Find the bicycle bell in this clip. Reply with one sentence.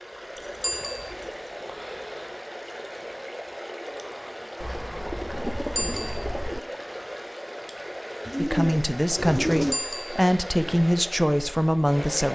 You can hear the bicycle bell from 0.6 to 1.1 s, from 5.8 to 6.2 s and from 9.7 to 10.2 s.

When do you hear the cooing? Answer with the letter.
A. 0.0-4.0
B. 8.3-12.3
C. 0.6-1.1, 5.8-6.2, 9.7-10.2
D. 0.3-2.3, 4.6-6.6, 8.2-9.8
D.